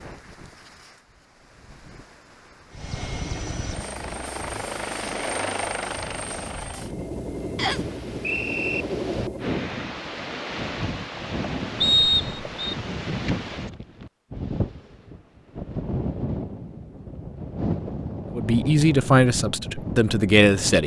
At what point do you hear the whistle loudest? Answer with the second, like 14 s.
12 s.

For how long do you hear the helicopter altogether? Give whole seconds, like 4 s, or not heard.
7 s.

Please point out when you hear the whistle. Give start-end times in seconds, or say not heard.
7.5-8.8, 11.8-12.8.